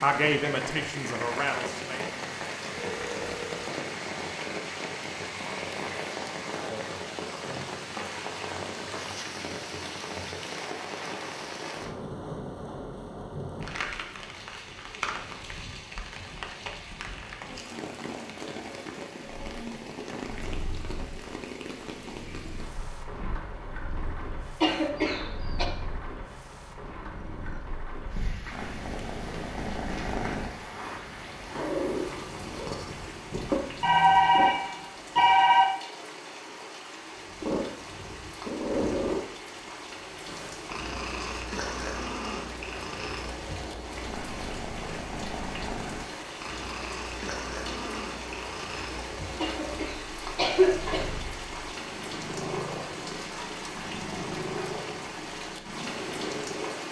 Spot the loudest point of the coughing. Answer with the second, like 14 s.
51 s.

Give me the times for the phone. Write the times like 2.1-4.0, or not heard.
2.7-3.7, 33.8-35.6.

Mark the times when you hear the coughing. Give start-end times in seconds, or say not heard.
24.6-25.6, 49.4-51.1.